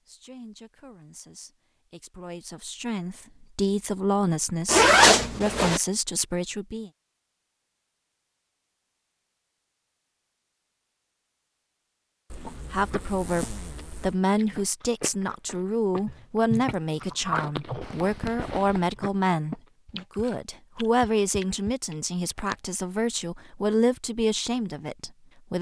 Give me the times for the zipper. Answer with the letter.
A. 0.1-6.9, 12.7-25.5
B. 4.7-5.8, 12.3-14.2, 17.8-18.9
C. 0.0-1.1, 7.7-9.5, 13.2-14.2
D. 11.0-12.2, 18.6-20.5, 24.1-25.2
B.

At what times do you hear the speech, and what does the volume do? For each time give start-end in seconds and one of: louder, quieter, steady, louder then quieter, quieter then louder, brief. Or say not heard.
0.1-6.9 louder
12.7-25.5 steady.